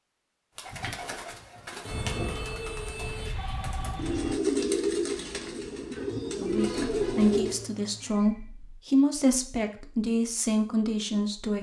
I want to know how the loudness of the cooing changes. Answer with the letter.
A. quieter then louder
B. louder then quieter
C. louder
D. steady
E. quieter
C.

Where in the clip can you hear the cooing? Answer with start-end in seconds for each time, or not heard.
0.6-7.7.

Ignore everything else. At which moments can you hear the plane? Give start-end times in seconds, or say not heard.
1.9-4.4.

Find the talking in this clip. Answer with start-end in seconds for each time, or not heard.
6.3-11.5.